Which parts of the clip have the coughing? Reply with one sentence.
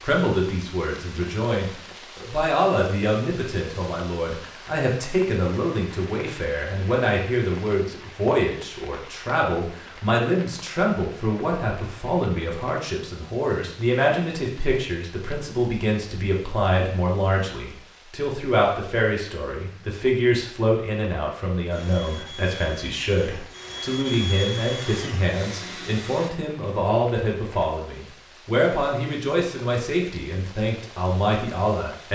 You can't hear the coughing here.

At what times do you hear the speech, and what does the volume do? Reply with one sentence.
The speech can be heard from 0.0 to 32.1 s, at a steady volume.